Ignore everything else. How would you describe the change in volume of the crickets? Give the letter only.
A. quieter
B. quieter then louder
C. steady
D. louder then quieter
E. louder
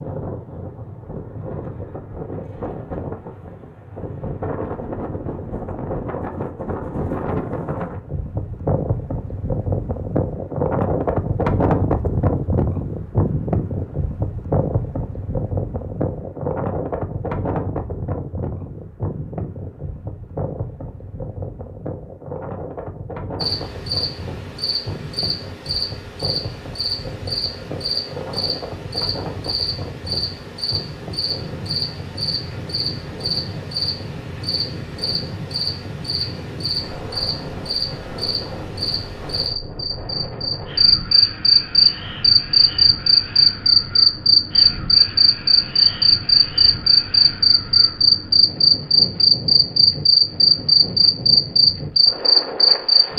E.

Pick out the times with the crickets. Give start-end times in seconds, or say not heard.
23.4-53.1.